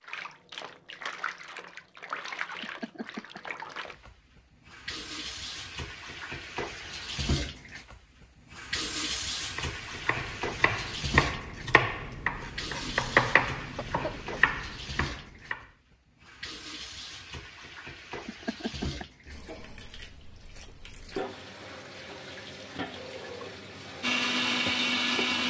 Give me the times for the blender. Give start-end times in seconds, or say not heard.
24.0-25.4.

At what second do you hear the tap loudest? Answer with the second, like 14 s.
9 s.